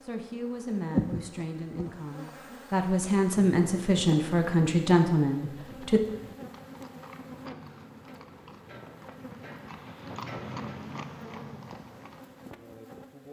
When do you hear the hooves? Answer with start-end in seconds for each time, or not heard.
5.6-12.6.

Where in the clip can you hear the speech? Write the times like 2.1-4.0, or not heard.
0.0-6.0.